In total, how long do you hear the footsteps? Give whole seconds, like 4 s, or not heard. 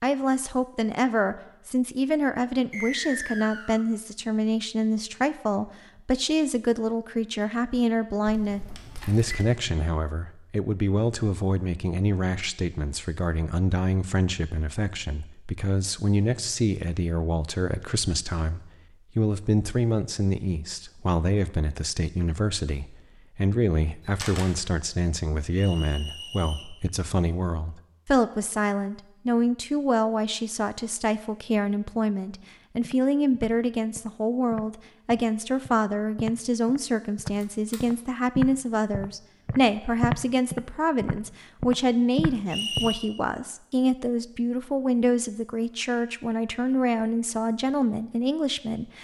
10 s.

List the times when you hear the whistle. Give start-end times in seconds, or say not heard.
2.7-3.9, 25.6-26.8, 42.5-43.0.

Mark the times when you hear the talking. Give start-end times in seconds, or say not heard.
0.0-48.9.